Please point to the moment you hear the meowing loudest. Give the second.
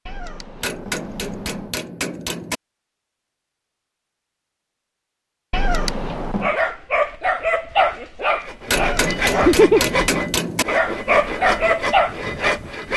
6 s.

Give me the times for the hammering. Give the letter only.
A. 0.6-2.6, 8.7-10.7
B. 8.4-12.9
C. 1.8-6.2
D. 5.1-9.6
A.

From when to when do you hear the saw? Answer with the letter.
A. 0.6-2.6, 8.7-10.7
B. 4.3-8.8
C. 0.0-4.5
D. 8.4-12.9
D.